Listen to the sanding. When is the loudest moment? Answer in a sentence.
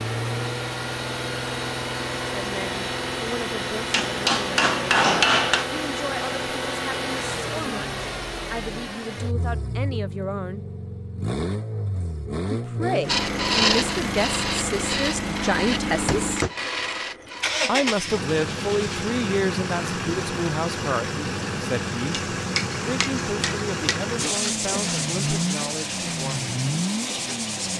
The volume of the sanding peaks at 14 seconds.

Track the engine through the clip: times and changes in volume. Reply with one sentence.
You can hear the engine from 0.0 to 27.7 s, at a steady volume.